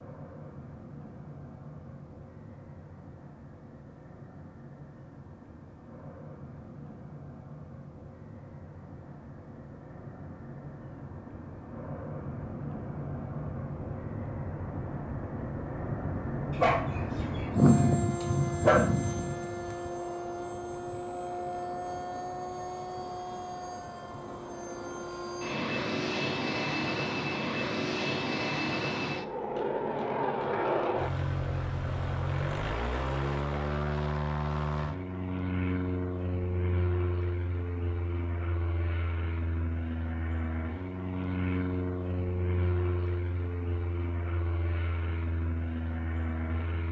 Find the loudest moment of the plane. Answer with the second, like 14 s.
18 s.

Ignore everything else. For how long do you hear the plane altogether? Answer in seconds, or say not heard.
47 s.